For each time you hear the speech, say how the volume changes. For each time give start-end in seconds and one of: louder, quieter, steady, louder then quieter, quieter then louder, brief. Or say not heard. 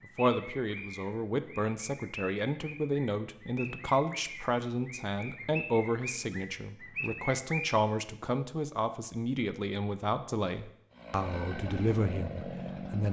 0.1-13.0 steady.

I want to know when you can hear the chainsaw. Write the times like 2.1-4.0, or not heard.
10.9-13.0.